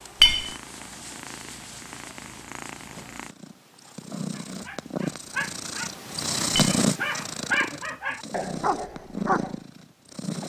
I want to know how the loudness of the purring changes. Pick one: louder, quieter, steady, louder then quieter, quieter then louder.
louder then quieter.